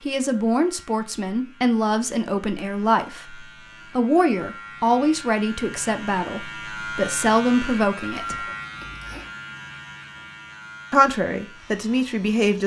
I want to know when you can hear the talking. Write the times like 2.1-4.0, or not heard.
0.0-8.4, 10.9-12.6.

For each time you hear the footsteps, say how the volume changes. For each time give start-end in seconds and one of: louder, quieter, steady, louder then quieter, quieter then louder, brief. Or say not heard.
not heard.